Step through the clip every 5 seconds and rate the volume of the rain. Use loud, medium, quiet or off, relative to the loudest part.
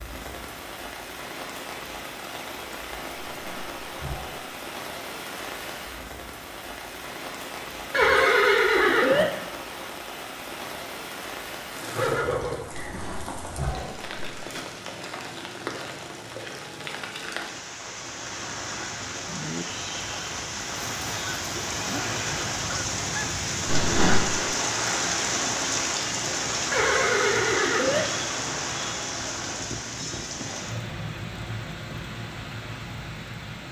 medium, medium, medium, medium, loud, loud, medium.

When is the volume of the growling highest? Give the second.
24 s.